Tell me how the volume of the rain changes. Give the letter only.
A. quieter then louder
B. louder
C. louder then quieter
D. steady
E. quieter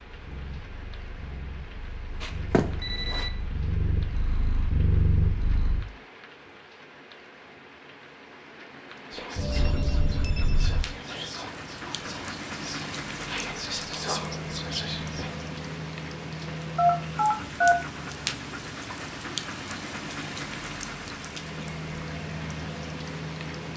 B.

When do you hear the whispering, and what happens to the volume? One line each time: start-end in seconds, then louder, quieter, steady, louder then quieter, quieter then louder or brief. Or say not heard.
9.1-15.3 louder.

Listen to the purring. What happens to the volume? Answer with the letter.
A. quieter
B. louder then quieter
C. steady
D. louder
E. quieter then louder
D.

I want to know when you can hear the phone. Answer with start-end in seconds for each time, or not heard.
2.2-3.3, 9.3-10.8, 16.8-17.8.